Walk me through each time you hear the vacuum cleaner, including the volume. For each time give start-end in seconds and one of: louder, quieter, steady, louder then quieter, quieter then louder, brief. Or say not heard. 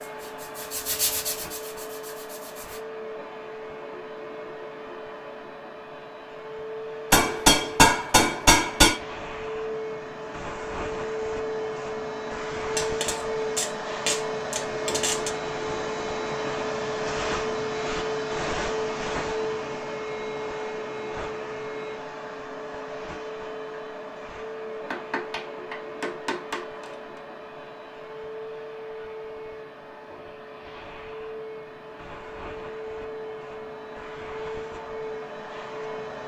0.0-36.2 louder then quieter.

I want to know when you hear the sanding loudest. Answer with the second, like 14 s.
1 s.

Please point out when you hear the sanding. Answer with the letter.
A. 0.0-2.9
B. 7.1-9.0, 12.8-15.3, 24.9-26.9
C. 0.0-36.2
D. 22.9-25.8
A.